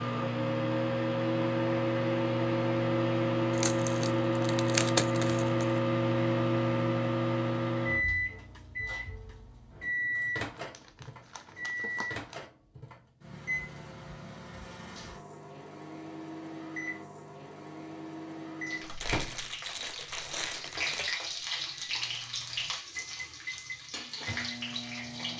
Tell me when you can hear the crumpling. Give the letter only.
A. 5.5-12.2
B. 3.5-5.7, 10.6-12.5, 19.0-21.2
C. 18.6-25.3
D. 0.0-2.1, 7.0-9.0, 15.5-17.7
B.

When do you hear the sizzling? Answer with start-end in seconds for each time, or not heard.
18.6-25.3.